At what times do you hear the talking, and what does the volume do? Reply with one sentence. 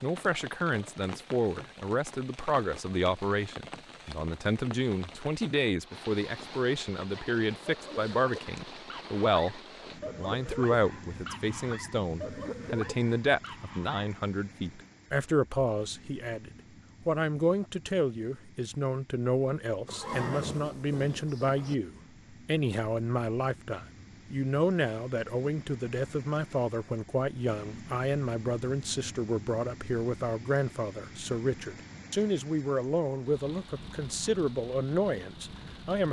The talking can be heard from 0.0 to 36.0 s, at a steady volume.